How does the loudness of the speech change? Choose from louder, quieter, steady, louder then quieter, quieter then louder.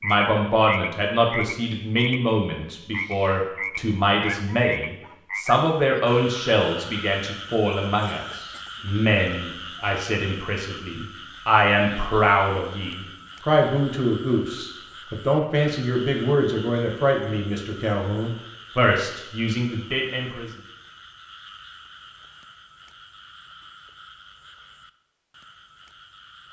steady.